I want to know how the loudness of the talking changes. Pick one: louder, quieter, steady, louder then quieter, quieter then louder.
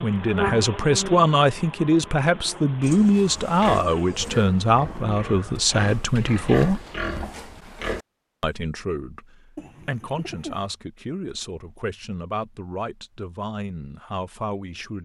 quieter.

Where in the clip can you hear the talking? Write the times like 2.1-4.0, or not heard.
0.0-6.8, 8.4-15.0.